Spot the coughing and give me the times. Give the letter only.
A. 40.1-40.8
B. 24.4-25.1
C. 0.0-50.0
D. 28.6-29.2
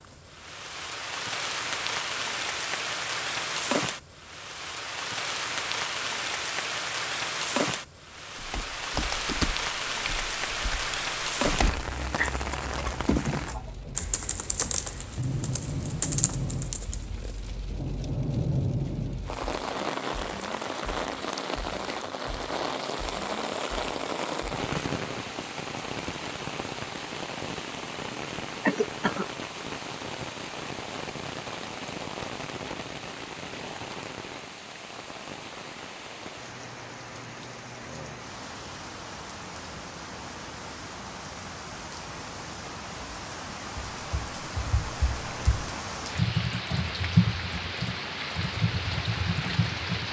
D.